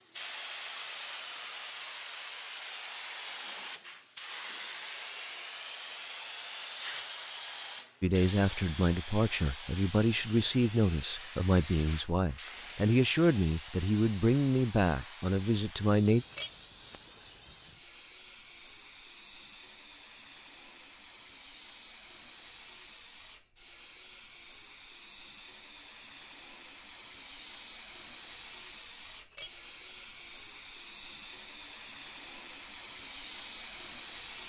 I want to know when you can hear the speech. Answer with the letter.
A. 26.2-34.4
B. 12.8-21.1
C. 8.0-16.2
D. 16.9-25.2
C.